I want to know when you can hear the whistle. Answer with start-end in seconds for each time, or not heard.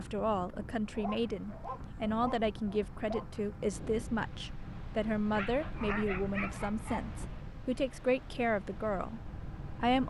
not heard.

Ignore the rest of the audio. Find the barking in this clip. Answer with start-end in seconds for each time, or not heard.
0.9-3.3, 5.3-7.2.